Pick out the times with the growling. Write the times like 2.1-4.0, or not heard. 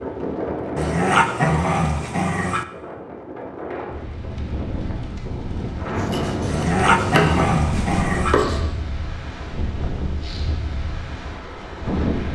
0.8-2.6, 6.5-8.3.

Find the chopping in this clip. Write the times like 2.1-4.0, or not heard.
6.0-8.7.